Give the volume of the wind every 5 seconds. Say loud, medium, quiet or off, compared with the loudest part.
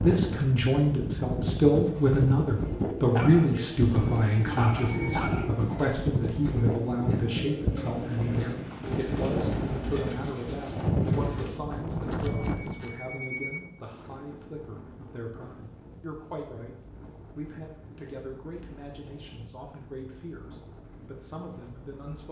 loud, loud, loud, quiet, quiet.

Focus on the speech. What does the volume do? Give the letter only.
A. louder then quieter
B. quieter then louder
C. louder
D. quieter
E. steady
D.